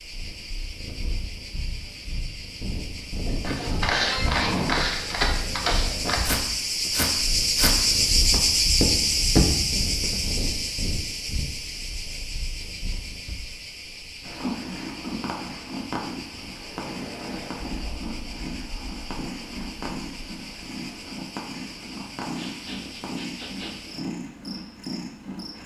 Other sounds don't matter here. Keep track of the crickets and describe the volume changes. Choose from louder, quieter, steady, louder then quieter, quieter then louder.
louder then quieter.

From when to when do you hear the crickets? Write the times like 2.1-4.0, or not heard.
0.0-25.6.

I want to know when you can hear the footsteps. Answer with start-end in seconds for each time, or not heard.
3.4-10.3.